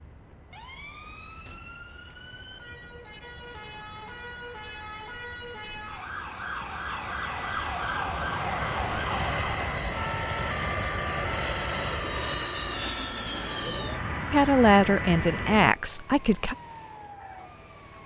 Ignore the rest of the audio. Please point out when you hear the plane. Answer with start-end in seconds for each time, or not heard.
0.0-15.7.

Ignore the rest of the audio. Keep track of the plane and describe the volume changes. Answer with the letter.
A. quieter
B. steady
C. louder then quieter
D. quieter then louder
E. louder
E.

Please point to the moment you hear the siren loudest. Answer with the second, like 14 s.
8 s.